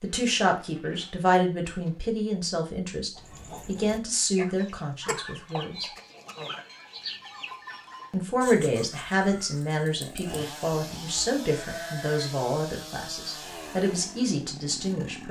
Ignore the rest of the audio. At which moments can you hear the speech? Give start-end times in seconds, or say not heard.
0.0-5.9, 8.1-15.2.